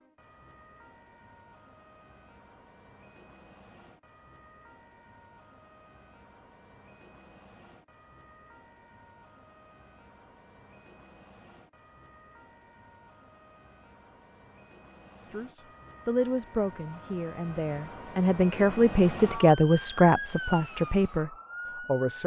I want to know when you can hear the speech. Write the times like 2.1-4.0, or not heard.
15.3-22.2.